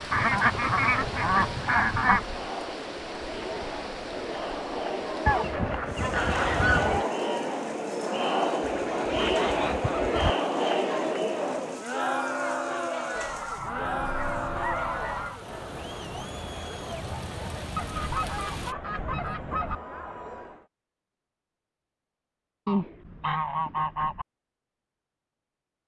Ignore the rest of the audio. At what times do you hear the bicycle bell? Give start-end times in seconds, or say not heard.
not heard.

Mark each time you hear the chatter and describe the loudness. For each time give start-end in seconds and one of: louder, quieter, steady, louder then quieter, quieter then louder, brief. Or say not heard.
0.0-20.6 louder then quieter.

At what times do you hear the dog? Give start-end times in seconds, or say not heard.
not heard.